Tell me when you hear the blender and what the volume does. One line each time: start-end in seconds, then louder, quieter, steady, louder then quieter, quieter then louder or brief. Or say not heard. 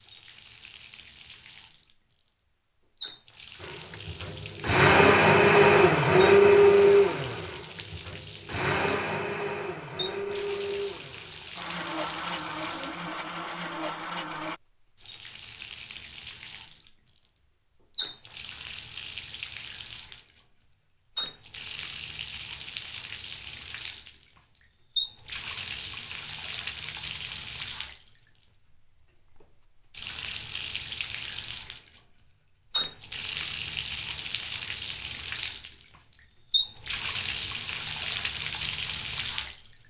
3.6-14.6 quieter.